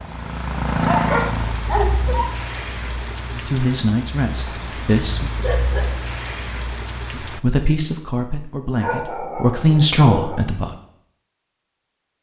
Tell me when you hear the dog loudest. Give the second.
1 s.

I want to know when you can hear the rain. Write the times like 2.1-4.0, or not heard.
0.0-7.4.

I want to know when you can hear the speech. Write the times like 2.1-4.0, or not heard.
3.4-5.3, 7.2-10.8.